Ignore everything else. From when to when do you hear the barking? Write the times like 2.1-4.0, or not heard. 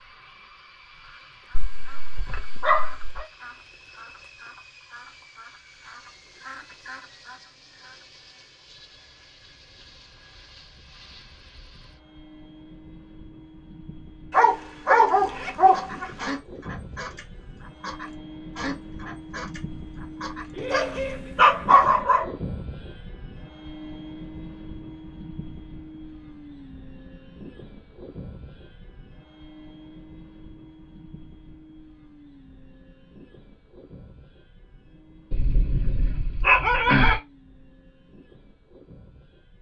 1.5-3.2, 14.3-16.4, 20.6-22.3, 35.3-37.2.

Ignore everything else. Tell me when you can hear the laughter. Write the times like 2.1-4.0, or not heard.
20.5-21.4.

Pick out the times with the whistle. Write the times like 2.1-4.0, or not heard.
not heard.